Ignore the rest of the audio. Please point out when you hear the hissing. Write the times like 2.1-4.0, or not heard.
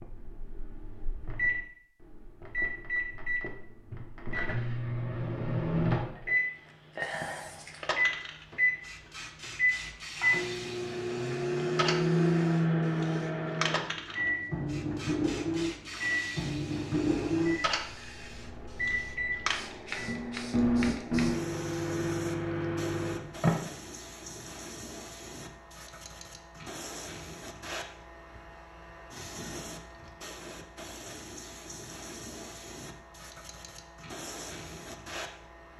7.0-35.7.